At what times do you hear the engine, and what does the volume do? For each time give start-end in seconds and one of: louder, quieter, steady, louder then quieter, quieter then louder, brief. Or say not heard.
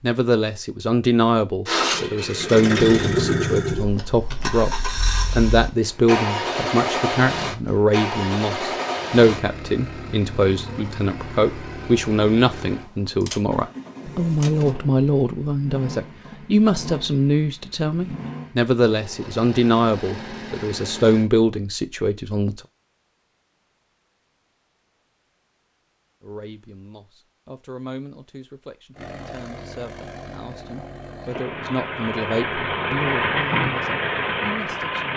1.6-21.3 quieter
28.9-35.1 louder.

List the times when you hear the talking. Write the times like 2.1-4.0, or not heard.
0.0-22.6, 26.2-35.1.